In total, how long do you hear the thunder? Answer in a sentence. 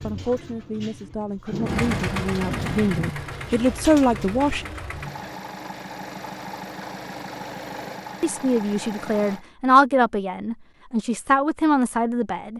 The thunder can be heard for 2 seconds in total.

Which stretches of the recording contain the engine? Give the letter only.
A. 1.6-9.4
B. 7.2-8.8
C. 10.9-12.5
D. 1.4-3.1
A.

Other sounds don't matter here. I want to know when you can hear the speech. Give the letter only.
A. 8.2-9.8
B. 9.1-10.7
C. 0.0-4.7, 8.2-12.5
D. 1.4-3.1
C.